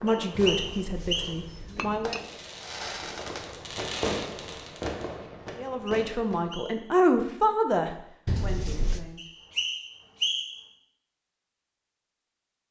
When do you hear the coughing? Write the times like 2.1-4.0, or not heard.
not heard.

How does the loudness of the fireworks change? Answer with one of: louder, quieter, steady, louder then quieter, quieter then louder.
louder then quieter.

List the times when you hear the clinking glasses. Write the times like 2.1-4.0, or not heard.
0.5-2.2, 8.2-9.0.